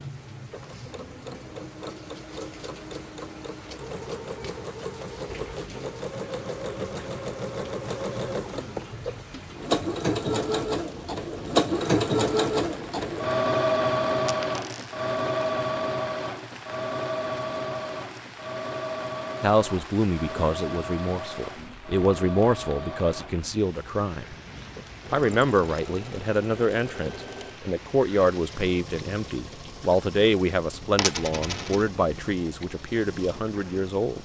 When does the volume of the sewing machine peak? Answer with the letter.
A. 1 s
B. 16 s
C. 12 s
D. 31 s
C.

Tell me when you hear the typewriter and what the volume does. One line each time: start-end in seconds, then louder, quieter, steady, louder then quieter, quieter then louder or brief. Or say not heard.
not heard.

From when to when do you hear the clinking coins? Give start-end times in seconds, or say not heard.
14.2-15.0, 30.9-31.9.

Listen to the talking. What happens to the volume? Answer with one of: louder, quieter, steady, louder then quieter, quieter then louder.
steady.